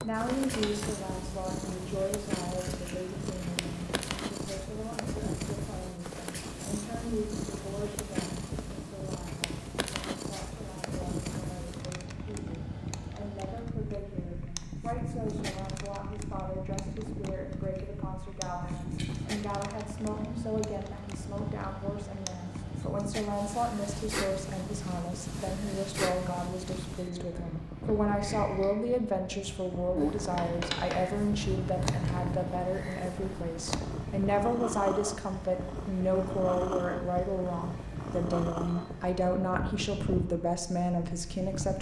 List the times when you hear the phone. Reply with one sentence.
You can hear the phone from 0.2 to 0.9 s and from 30.4 to 30.9 s.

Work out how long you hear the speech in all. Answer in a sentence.
The speech can be heard for 42 seconds in total.